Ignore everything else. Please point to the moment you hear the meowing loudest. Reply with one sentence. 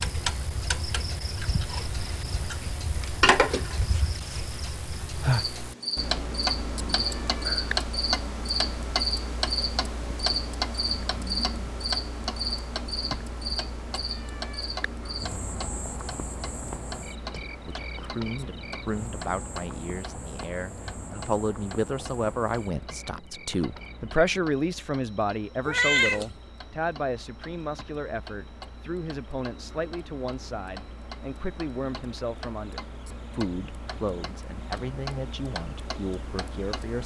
The loudest moment of the meowing is at 26 seconds.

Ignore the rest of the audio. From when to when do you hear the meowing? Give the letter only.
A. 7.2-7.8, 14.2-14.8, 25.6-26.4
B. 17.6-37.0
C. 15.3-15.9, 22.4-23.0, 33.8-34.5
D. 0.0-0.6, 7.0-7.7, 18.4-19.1
A.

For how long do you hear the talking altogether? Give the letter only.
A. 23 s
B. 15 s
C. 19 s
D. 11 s
C.